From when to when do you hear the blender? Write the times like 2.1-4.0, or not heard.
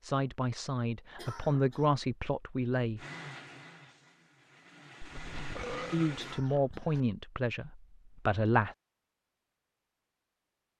3.0-6.4.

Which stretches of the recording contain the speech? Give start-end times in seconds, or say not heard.
0.0-3.0, 5.9-8.8.